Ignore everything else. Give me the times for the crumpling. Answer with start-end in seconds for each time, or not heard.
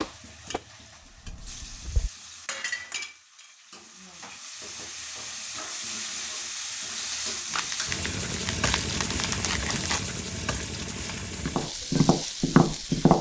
7.5-10.1.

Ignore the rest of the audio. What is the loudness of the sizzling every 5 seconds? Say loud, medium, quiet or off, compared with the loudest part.
medium, loud, loud.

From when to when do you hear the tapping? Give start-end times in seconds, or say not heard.
0.0-2.1, 11.4-13.1.